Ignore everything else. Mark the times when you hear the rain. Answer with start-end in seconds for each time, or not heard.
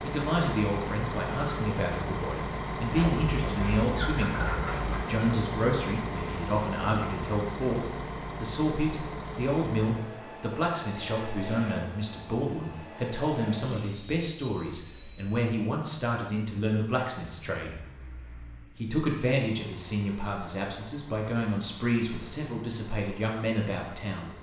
not heard.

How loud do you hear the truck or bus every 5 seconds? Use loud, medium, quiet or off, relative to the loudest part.
loud, loud, medium, quiet, quiet.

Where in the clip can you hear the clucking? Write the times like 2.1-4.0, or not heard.
3.0-5.1.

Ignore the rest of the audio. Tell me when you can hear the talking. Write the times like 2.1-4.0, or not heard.
0.0-17.8, 18.7-24.3.